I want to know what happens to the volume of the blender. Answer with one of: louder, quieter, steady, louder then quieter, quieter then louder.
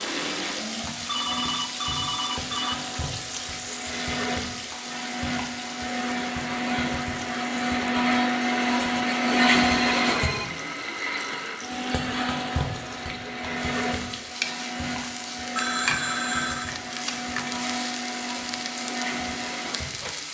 louder then quieter.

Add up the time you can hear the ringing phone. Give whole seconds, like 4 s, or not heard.
4 s.